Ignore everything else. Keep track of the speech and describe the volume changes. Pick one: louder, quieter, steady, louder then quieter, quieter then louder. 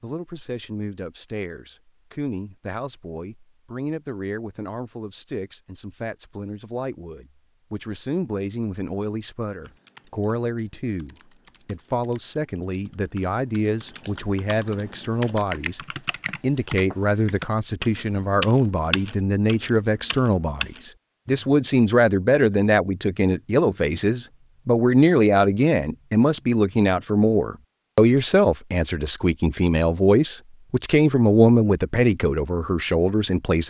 louder.